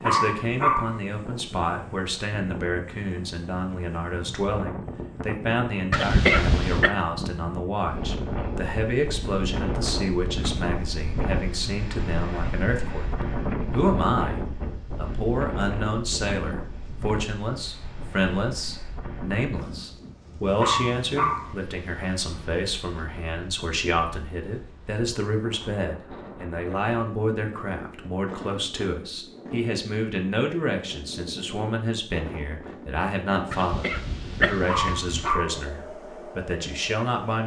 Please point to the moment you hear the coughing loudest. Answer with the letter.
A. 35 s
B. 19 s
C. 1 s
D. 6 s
D.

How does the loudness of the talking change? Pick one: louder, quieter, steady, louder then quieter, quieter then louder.
steady.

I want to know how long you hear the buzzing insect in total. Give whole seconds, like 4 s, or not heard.
not heard.